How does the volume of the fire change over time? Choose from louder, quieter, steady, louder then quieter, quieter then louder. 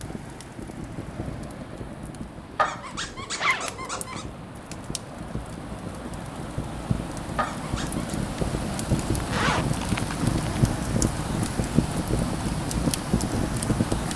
louder.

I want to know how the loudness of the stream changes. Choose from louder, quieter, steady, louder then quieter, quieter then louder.
louder.